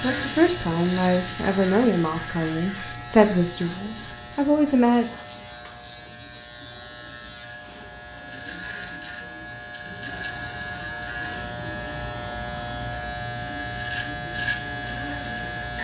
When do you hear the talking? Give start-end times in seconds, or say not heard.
0.0-5.0.